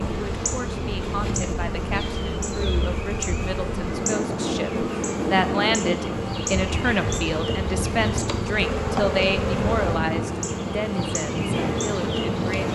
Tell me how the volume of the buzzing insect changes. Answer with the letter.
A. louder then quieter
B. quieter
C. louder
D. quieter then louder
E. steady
E.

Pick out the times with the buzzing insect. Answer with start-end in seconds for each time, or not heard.
0.0-12.7.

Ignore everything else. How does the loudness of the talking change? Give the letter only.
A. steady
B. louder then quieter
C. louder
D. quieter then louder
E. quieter
B.